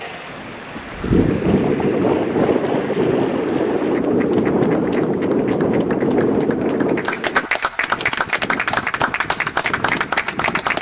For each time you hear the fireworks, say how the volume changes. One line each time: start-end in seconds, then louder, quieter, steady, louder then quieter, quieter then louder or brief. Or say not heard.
not heard.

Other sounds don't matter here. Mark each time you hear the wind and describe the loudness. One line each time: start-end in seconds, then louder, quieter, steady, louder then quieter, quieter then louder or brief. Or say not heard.
0.0-10.7 quieter.